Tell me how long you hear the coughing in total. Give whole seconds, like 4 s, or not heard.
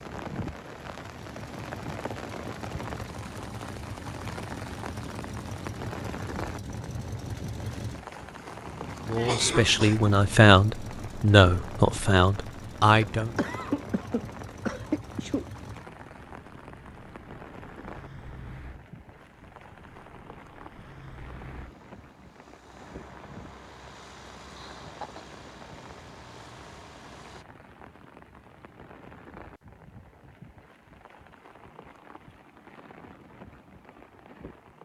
4 s.